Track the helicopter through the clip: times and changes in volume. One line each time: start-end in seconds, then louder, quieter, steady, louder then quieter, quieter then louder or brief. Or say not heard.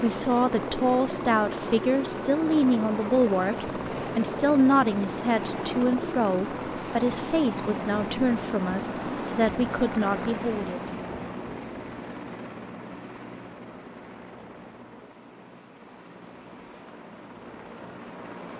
0.0-18.5 quieter.